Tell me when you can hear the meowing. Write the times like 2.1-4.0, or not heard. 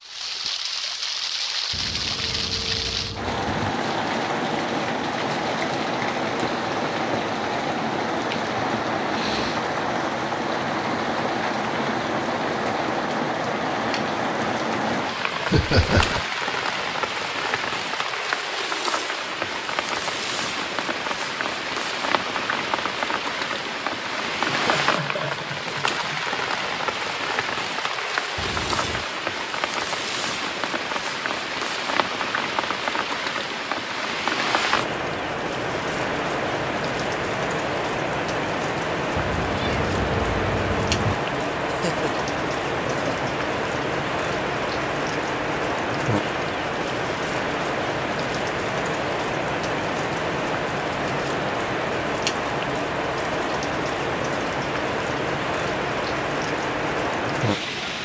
1.7-3.8, 28.4-29.1, 39.1-41.1.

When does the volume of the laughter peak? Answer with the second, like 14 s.
16 s.